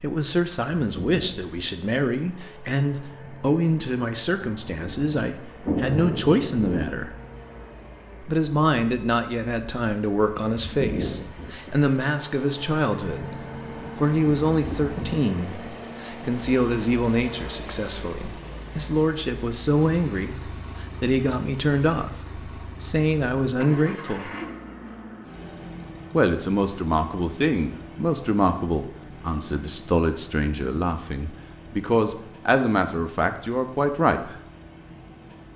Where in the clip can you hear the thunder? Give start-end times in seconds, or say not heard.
5.6-7.0.